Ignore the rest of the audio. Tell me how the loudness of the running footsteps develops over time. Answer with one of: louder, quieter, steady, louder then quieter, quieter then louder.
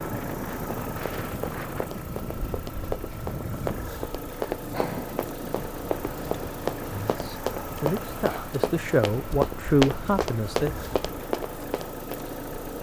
louder.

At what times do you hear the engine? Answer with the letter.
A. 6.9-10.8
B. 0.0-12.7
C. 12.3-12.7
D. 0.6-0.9
B.